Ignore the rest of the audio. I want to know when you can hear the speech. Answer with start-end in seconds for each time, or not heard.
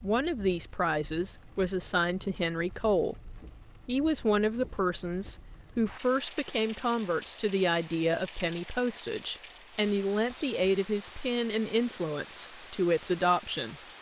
0.0-3.1, 3.9-13.8.